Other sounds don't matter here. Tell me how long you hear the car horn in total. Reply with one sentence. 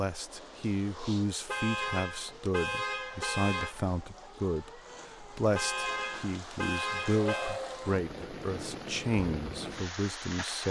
The car horn can be heard for 4 seconds in total.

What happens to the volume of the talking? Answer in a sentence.
The volume of the talking stays about the same.